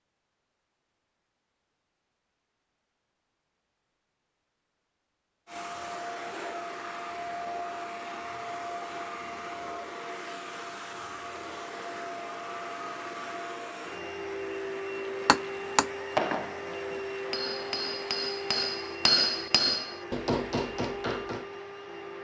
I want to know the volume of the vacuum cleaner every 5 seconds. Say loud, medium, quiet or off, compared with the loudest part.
off, loud, loud, loud, loud.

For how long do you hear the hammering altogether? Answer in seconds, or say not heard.
6 s.